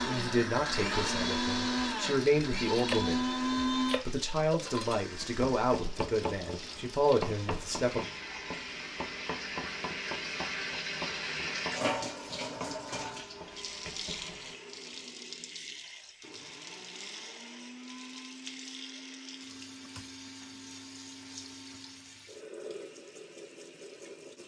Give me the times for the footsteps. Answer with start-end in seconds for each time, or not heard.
not heard.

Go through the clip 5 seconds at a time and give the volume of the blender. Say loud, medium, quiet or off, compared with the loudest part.
loud, quiet, quiet, quiet, quiet.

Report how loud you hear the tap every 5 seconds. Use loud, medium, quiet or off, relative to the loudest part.
medium, medium, loud, medium, medium.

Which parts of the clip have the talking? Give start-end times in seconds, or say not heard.
0.1-8.1.